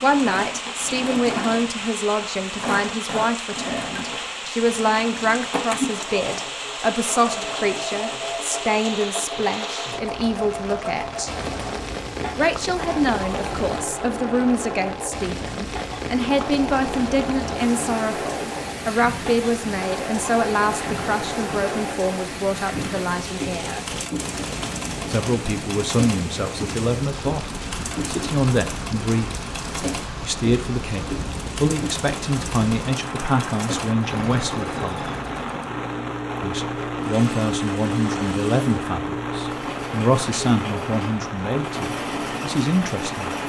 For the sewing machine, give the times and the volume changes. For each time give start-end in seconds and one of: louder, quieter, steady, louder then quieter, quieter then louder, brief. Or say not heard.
0.0-43.4 steady.